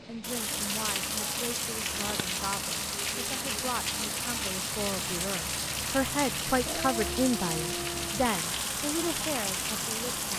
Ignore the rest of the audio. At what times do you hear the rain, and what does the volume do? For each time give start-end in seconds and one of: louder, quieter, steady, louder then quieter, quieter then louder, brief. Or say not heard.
0.0-10.3 steady.